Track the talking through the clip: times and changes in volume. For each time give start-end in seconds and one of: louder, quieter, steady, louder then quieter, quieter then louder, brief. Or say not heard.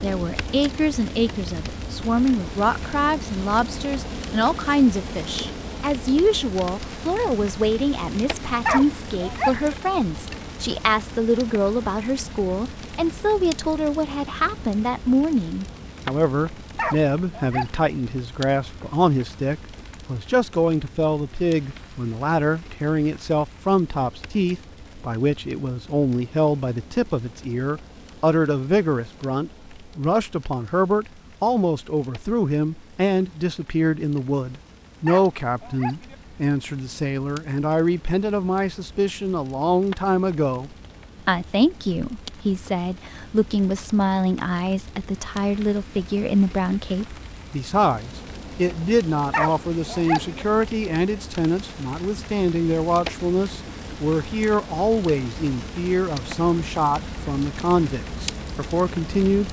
0.0-59.4 steady.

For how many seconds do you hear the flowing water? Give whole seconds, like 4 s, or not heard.
not heard.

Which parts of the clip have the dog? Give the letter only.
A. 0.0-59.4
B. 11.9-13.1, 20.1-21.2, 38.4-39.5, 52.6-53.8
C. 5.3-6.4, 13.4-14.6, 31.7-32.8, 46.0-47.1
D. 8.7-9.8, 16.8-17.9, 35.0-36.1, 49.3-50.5
D.